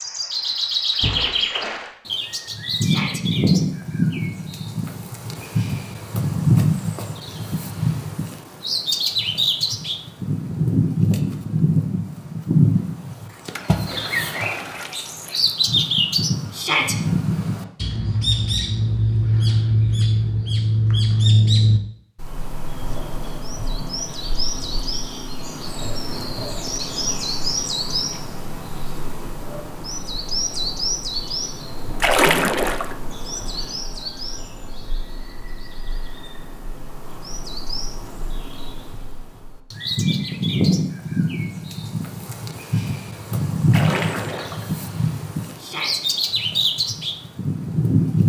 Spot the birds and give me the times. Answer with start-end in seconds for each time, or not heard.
0.0-48.2.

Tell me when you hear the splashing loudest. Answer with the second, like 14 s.
32 s.